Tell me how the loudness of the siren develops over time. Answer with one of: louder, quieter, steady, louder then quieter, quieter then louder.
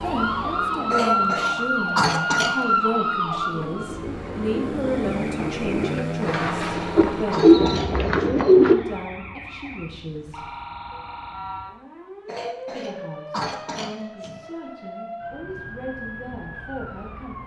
quieter.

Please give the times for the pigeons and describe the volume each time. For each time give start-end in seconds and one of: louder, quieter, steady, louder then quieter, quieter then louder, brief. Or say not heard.
3.5-8.8 louder.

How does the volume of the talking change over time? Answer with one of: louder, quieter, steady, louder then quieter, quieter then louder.
quieter.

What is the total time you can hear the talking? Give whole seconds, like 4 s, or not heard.
15 s.